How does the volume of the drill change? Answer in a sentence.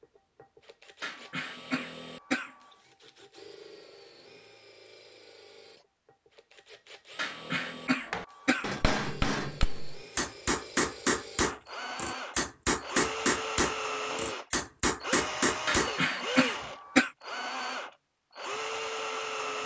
The loudness of the drill goes up.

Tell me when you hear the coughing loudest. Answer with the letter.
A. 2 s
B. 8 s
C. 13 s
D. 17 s
D.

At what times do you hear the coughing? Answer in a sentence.
You can hear the coughing from 1.0 to 2.5 s, from 7.2 to 8.8 s and from 15.7 to 17.1 s.